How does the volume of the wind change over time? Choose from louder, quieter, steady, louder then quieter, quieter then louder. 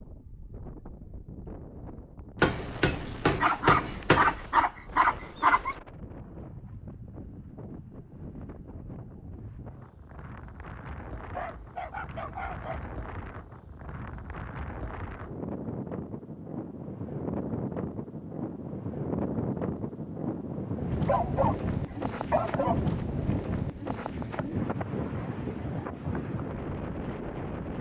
louder.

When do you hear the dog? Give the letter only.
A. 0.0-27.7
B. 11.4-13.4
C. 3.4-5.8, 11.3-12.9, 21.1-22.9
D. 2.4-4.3
C.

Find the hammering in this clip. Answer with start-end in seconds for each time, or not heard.
2.4-4.3.